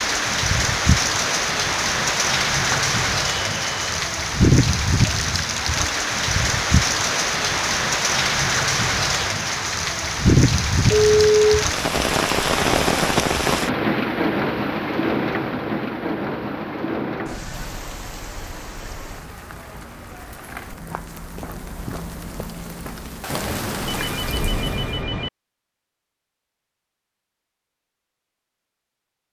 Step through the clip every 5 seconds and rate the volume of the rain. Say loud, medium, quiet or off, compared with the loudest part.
loud, loud, loud, medium, quiet, off.